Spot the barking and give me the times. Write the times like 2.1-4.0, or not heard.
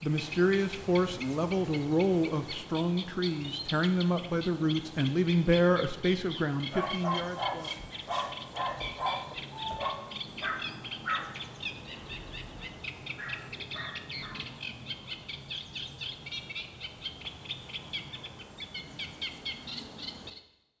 6.7-14.4.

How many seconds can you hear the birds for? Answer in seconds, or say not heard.
21 s.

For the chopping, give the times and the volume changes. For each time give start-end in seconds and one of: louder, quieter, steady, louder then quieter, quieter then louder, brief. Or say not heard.
not heard.